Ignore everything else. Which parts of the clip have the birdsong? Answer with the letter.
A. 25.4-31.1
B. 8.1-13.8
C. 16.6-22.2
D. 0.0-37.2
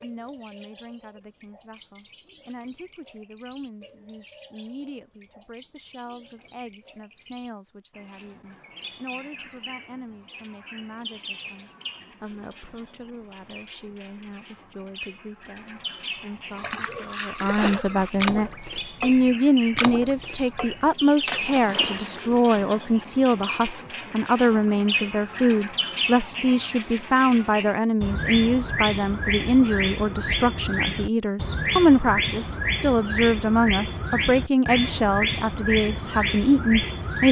D.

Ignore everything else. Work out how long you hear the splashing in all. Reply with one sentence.
You can hear the splashing for 6 seconds altogether.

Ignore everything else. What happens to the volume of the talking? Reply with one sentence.
The volume of the talking goes up.